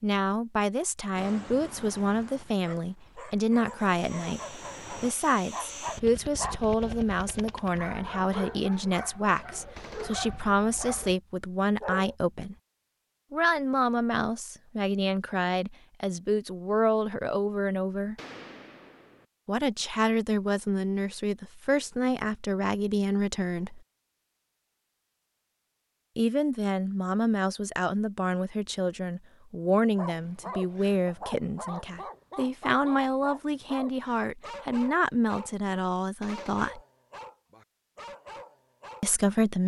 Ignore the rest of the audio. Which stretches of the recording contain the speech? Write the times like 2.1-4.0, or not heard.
0.0-12.6, 13.3-18.1, 19.4-23.8, 26.1-36.8, 39.0-39.6.